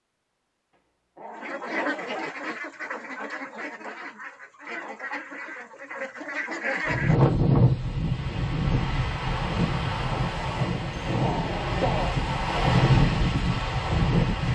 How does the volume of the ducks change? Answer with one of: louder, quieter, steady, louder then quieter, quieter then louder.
quieter then louder.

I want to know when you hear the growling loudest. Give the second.
12 s.